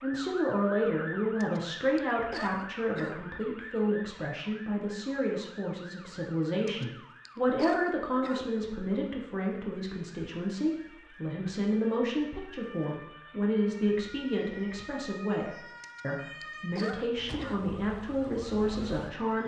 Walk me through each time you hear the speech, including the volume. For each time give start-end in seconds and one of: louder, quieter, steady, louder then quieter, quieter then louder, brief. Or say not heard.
0.0-19.4 steady.